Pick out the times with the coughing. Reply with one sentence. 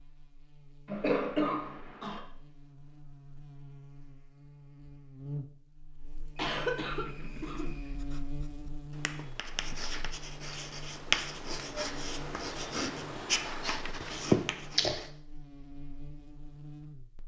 The coughing can be heard from 0.8 to 2.2 s, from 6.3 to 8.0 s and from 14.3 to 15.0 s.